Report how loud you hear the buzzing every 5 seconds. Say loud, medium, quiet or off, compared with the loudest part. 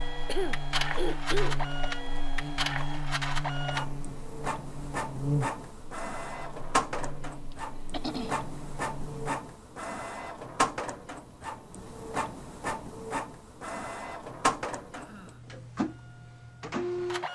loud, loud, off, off.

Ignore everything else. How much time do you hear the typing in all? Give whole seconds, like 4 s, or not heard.
not heard.